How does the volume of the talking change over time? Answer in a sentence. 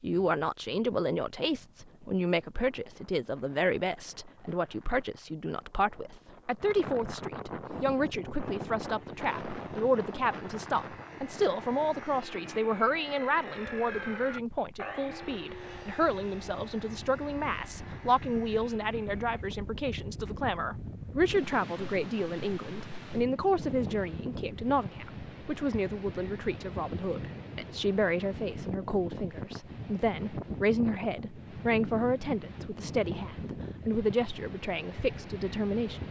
The volume of the talking stays about the same.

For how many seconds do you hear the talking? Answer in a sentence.
You can hear the talking for 36 seconds altogether.